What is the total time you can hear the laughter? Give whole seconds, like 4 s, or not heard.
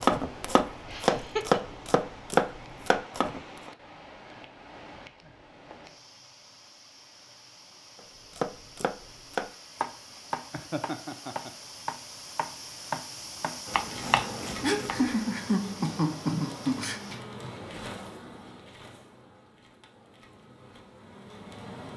4 s.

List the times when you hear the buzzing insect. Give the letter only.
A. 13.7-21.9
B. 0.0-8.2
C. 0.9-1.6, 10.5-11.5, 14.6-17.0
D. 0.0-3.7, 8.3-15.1
A.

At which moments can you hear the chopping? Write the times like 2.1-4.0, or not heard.
0.0-3.7, 8.3-15.1.